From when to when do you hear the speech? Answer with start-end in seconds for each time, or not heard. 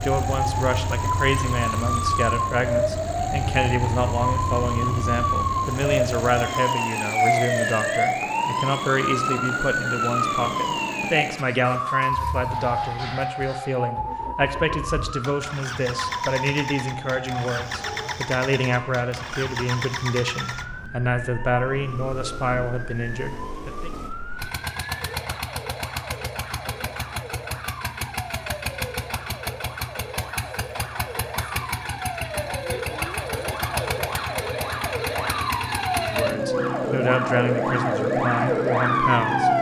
0.0-23.9, 36.0-39.5.